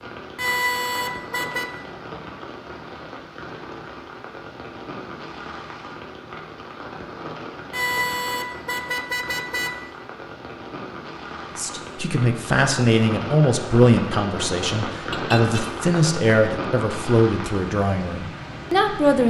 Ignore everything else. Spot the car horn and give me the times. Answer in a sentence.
You can hear the car horn from 0.3 to 1.7 s, from 7.7 to 9.7 s and from 15.1 to 15.7 s.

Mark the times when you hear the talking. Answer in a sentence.
You can hear the talking from 11.6 to 19.2 s.